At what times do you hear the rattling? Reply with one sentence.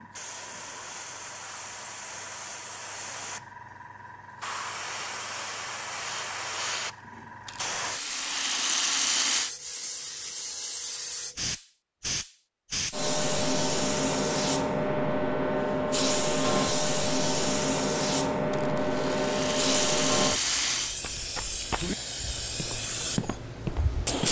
You can hear the rattling from 7.5 to 9.5 s and from 18.5 to 20.9 s.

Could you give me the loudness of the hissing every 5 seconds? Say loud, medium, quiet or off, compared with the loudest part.
quiet, medium, loud, loud, medium.